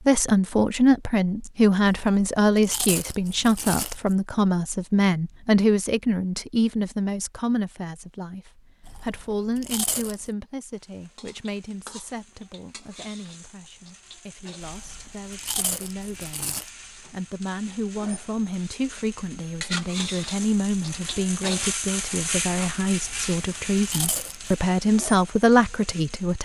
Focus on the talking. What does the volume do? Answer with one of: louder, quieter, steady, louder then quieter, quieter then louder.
quieter then louder.